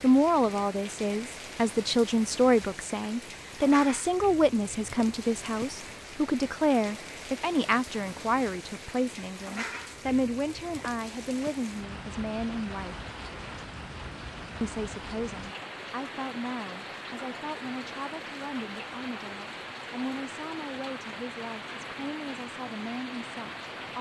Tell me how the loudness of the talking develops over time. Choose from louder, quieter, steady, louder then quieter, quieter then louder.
quieter.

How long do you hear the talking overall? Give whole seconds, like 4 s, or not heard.
22 s.